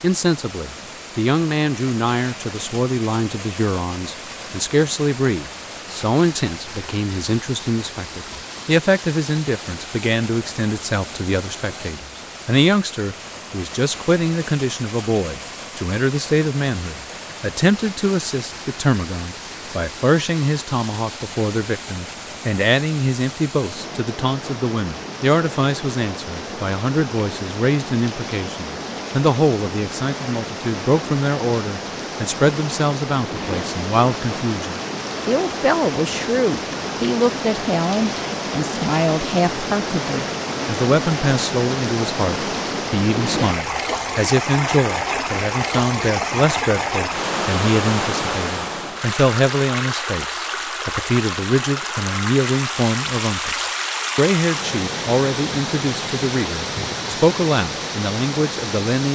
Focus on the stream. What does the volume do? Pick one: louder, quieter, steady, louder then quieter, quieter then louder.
louder.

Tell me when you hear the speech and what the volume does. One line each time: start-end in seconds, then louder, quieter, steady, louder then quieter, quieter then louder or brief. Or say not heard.
0.0-59.1 steady.